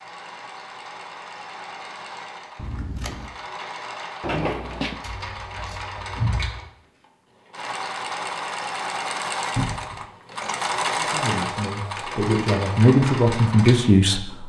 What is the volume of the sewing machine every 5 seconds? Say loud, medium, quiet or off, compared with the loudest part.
medium, loud, loud.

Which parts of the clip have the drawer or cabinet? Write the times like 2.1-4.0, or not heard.
4.2-5.0, 9.6-10.1.